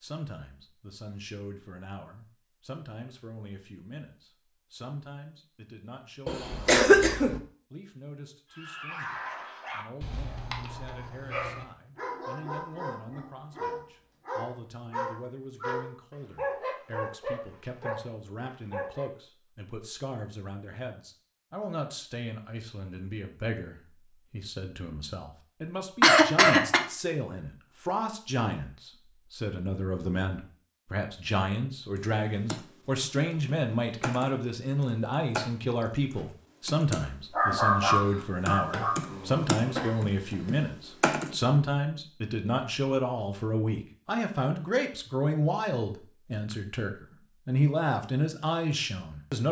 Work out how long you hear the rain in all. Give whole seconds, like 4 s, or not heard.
not heard.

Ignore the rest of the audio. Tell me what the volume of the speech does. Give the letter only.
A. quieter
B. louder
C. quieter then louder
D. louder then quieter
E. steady
B.